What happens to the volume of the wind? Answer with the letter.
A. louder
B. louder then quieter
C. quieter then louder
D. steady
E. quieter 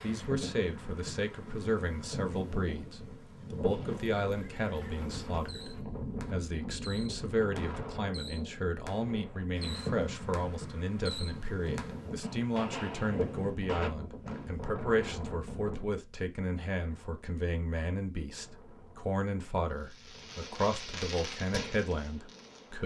E.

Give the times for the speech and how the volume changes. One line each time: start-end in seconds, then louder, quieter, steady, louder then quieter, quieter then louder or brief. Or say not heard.
0.0-22.8 steady.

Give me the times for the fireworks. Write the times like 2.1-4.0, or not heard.
3.5-14.6, 19.8-22.8.